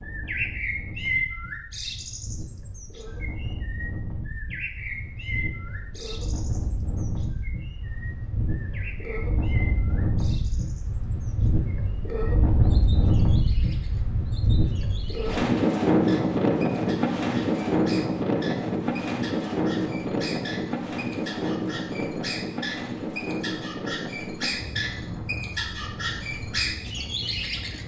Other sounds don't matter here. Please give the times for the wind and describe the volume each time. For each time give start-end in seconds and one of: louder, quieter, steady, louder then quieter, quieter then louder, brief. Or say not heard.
0.0-27.8 louder then quieter.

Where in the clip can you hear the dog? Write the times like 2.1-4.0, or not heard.
not heard.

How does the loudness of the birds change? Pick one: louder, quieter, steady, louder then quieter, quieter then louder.
quieter then louder.